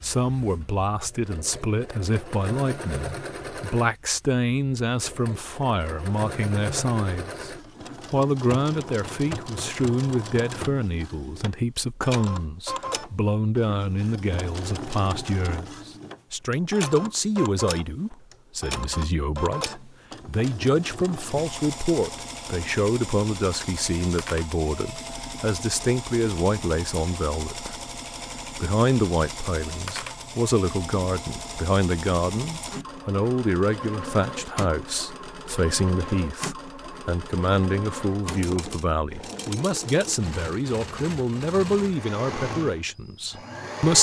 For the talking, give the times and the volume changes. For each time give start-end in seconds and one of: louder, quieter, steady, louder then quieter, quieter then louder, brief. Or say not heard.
0.0-43.9 steady.